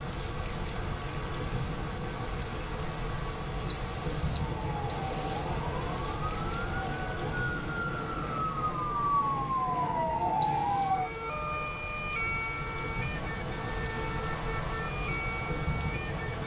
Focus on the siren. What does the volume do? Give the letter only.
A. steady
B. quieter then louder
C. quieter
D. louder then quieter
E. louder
D.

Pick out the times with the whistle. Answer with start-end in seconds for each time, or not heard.
3.6-5.5, 10.4-11.1.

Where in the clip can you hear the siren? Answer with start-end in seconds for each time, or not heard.
4.5-16.4.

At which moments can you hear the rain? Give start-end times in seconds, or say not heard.
0.0-16.4.